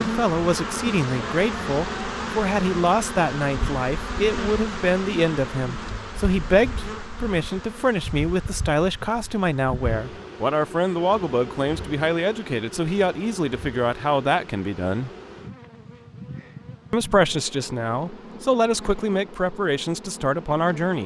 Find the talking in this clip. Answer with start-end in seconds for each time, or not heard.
0.0-15.1, 16.9-21.0.